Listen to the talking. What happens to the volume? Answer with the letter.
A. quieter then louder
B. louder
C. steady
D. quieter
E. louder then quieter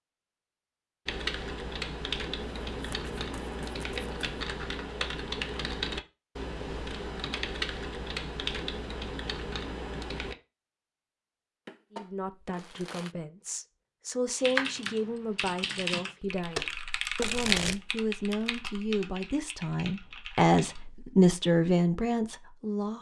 B.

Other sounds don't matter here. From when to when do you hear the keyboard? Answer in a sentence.
You can hear the keyboard from 1.1 to 10.3 s and from 14.4 to 20.9 s.